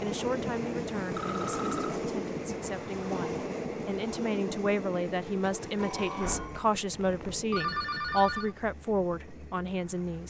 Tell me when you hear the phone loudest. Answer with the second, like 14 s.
8 s.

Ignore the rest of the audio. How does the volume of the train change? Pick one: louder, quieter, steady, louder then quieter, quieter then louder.
quieter.